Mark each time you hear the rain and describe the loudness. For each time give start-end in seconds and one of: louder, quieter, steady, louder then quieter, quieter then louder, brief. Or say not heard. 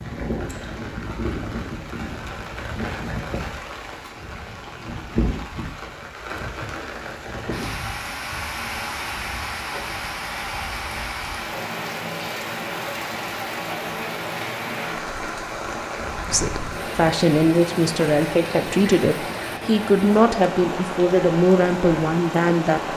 0.0-22.9 steady.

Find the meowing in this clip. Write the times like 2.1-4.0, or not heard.
not heard.